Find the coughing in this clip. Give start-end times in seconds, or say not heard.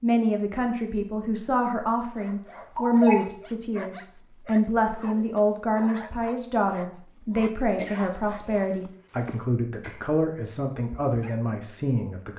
2.8-3.2, 7.7-8.7.